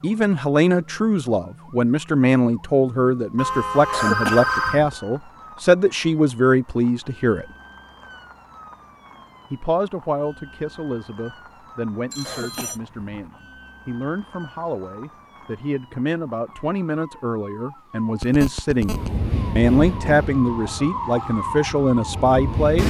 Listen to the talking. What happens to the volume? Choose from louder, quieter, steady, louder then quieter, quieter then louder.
quieter then louder.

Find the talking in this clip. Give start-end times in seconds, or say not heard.
0.0-7.5, 9.5-22.8.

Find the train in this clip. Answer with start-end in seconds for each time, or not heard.
18.8-22.8.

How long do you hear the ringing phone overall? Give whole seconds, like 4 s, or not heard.
3 s.